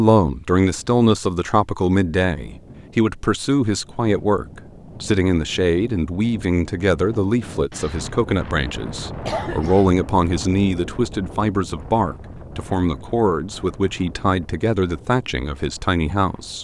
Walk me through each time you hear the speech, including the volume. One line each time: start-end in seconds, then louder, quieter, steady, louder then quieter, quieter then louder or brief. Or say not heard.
0.0-16.6 steady.